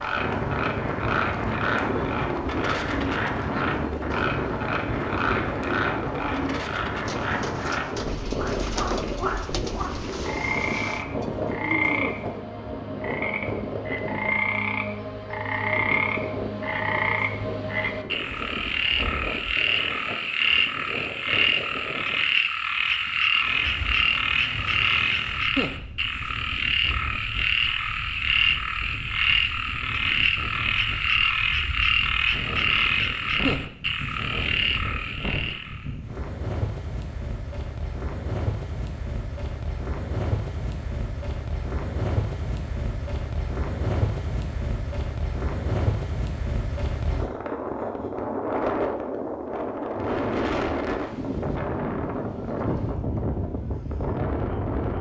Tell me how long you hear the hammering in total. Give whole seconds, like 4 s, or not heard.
not heard.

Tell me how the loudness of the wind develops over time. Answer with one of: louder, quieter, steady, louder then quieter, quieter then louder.
quieter then louder.